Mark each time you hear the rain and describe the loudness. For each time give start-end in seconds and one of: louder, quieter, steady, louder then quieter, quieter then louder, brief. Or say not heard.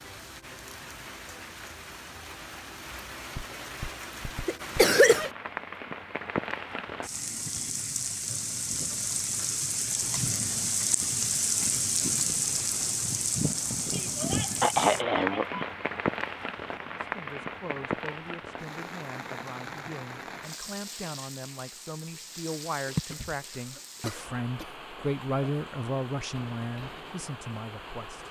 0.0-28.2 louder then quieter.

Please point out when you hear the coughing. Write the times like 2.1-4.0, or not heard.
3.4-5.2, 13.9-15.7, 22.9-24.7.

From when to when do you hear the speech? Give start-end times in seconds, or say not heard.
16.8-28.2.